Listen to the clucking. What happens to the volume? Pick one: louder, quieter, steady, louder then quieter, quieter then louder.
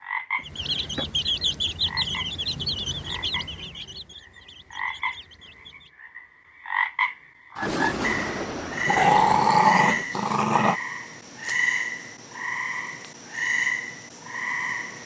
quieter.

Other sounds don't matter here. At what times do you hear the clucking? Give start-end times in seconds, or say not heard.
0.3-5.9.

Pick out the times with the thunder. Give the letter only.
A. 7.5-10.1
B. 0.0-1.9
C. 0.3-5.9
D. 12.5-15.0
A.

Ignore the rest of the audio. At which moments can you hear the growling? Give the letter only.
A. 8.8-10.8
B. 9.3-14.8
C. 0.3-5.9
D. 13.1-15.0
A.